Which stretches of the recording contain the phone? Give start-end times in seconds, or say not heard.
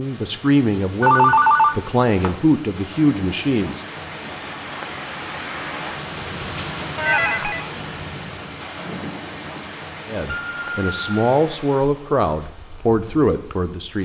1.0-2.4, 7.0-7.7, 10.2-11.2.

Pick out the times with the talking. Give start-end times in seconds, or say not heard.
0.0-3.8, 10.1-13.9.